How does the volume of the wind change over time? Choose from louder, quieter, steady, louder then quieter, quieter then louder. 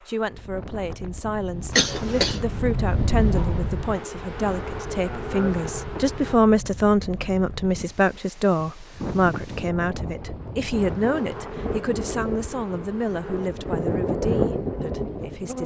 quieter then louder.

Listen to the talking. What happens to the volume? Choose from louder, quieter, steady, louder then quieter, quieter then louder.
louder then quieter.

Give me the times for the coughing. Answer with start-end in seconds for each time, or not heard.
1.7-2.4.